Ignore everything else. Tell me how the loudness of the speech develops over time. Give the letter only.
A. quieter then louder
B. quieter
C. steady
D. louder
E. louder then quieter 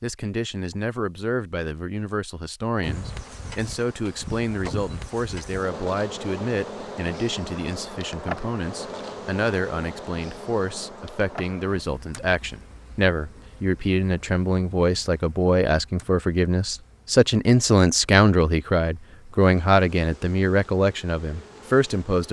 D.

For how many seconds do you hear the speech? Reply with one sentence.
The speech can be heard for 22 seconds in total.